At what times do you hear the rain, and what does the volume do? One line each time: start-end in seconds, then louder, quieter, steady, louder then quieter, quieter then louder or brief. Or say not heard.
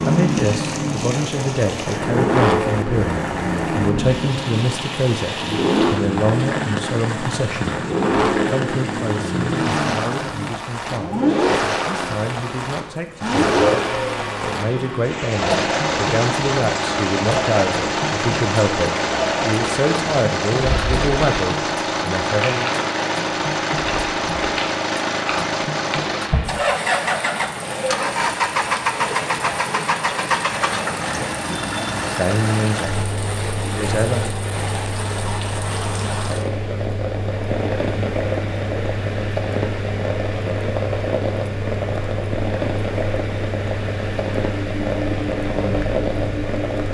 0.0-46.9 steady.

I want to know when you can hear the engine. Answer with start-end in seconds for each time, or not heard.
0.0-46.9.